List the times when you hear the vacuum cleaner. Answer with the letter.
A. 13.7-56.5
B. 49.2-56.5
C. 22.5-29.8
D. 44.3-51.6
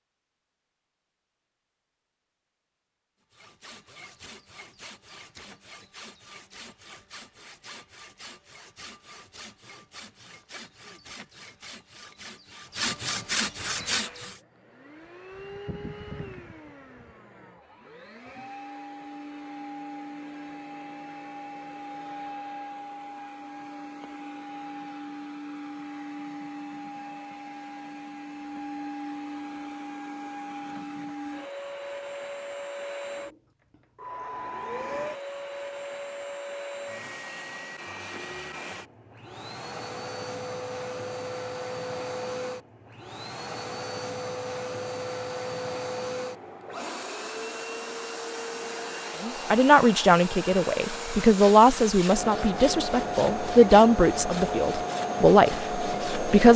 A.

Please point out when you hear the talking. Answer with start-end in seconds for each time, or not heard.
49.2-56.5.